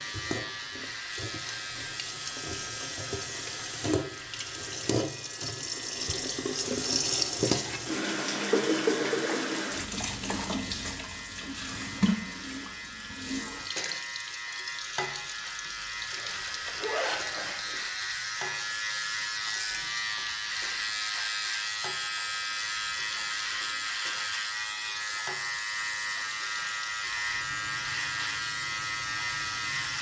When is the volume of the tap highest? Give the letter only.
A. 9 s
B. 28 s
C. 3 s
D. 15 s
A.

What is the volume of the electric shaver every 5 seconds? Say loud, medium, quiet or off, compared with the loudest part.
medium, quiet, medium, loud, loud, loud.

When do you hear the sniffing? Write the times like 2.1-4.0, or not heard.
not heard.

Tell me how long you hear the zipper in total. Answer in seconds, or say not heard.
2 s.